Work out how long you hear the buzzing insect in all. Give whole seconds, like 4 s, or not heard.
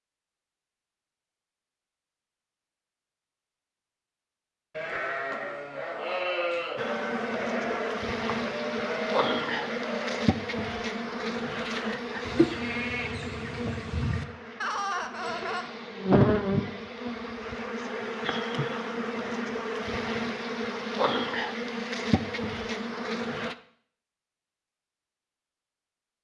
17 s.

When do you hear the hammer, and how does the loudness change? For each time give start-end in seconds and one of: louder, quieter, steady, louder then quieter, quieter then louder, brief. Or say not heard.
not heard.